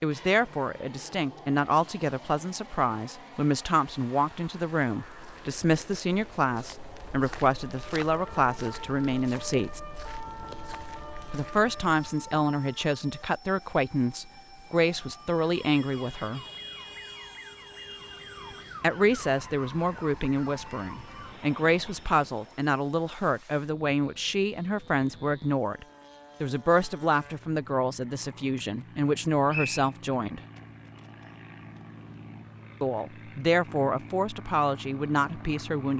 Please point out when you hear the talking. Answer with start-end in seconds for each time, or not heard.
0.0-9.8, 11.3-16.4, 18.8-30.4, 32.8-35.9.